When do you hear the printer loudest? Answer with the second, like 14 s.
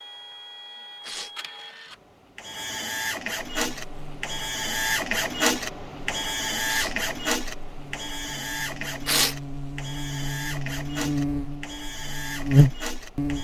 5 s.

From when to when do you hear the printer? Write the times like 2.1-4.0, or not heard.
0.0-13.3.